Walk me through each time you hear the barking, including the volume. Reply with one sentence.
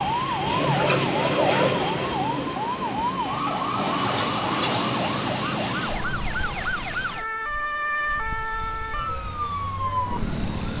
The barking can't be heard in this clip.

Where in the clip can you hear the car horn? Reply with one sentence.
You can't hear the car horn here.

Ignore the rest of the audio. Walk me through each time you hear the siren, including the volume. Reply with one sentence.
The siren can be heard from 0.0 to 10.7 s, at a steady volume.